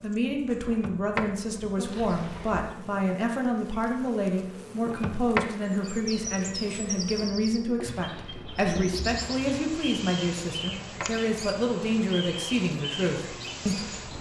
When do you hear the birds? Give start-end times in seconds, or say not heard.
5.7-14.1.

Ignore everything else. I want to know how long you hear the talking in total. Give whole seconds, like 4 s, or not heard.
14 s.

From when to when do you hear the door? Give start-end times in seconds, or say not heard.
0.7-2.7, 4.8-5.5, 10.5-11.2.